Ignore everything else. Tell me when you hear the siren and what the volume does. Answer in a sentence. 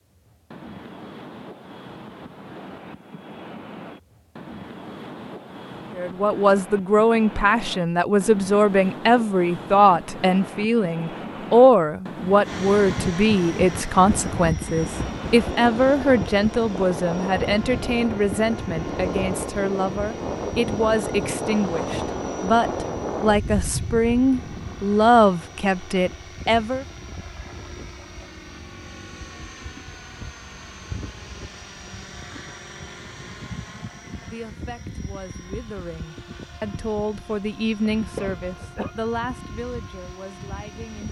You can't hear the siren here.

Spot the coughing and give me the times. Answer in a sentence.
You can hear the coughing from 38.1 to 39.0 s.